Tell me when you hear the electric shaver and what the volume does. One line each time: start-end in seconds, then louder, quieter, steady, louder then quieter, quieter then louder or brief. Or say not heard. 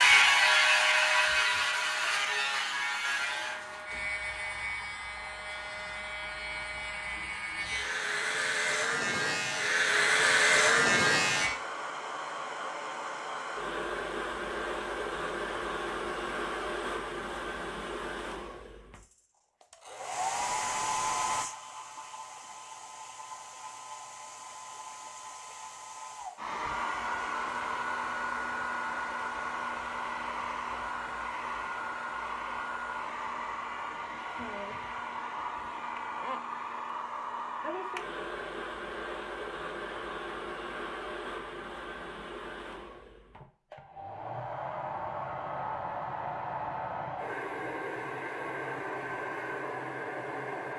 0.0-11.5 quieter then louder.